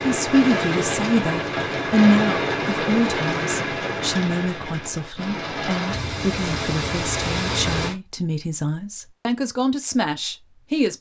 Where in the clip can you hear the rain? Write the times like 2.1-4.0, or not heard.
0.0-8.0.